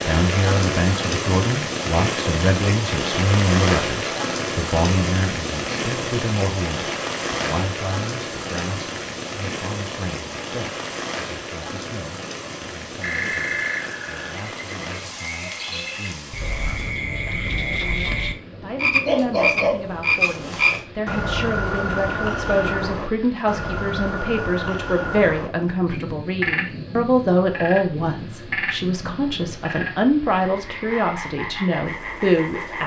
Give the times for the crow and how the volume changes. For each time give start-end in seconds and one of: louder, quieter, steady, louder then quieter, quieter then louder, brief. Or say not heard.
not heard.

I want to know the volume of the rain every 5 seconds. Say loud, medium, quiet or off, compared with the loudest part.
loud, loud, medium, quiet, quiet, quiet, quiet.